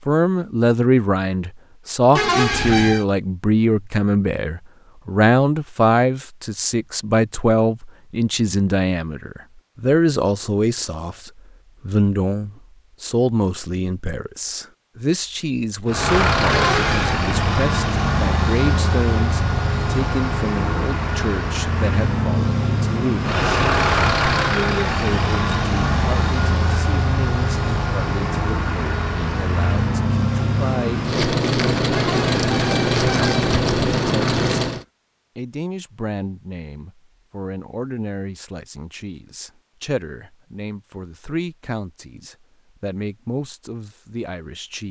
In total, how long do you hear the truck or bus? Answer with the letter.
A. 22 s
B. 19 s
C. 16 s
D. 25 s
B.